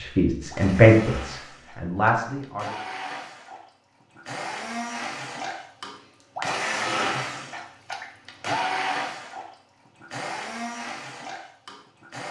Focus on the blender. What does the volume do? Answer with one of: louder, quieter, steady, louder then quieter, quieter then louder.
louder then quieter.